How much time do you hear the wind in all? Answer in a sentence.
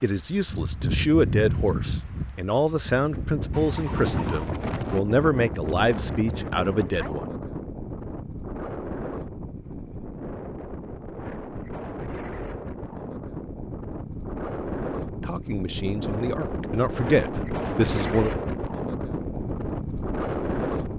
You can hear the wind for 21 seconds altogether.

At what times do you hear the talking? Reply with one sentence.
You can hear the talking from 0.0 to 7.2 s and from 15.2 to 18.4 s.